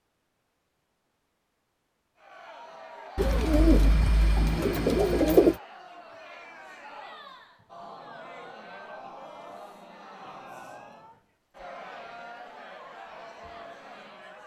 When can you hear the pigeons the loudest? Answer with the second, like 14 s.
5 s.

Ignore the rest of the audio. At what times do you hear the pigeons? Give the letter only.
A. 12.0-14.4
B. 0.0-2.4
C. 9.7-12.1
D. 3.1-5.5
D.